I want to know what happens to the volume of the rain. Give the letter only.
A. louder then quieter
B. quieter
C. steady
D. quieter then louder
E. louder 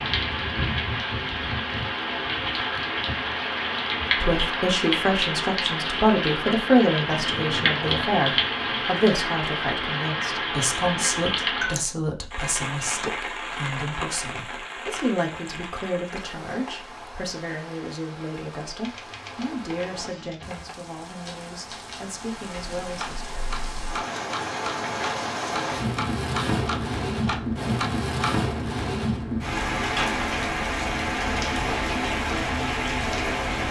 D.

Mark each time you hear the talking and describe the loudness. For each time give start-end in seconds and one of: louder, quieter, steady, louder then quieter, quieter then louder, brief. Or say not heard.
4.2-23.3 quieter.